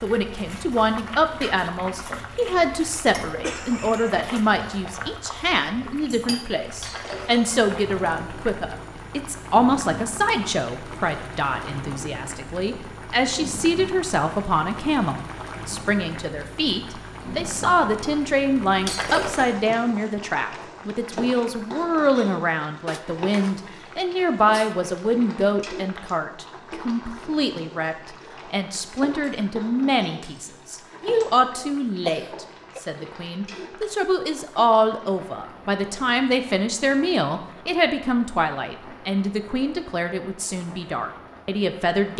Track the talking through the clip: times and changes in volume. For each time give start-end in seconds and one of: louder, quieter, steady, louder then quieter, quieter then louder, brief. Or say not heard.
0.0-42.1 steady.